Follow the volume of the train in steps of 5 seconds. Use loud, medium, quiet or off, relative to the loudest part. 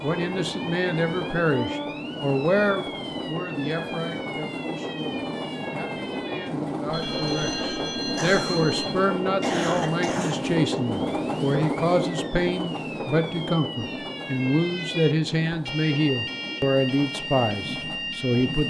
loud, loud, loud, medium.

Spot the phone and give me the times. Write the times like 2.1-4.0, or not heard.
6.9-8.9.